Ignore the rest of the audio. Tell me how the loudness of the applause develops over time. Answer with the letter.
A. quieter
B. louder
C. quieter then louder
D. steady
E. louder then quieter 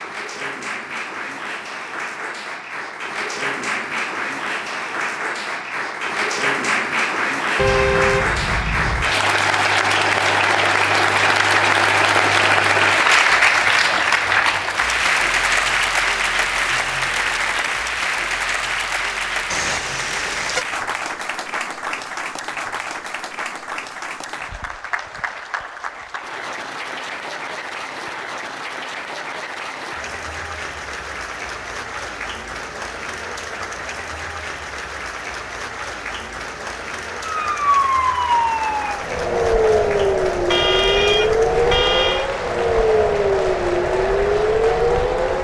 E.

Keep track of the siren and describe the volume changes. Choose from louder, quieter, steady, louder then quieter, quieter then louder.
steady.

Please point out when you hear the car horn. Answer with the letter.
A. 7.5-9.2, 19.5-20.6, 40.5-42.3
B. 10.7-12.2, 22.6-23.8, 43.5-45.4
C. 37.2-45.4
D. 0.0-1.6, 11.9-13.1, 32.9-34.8
A.